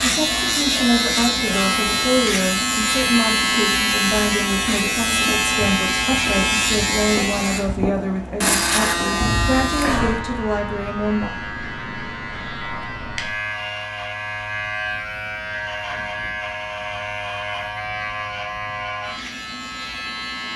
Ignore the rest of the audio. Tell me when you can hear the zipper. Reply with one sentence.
You can't hear the zipper here.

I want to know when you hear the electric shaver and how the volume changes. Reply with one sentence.
The electric shaver can be heard from 0.0 to 20.5 s, getting quieter.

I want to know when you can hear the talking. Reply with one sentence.
The talking can be heard from 0.0 to 11.3 s.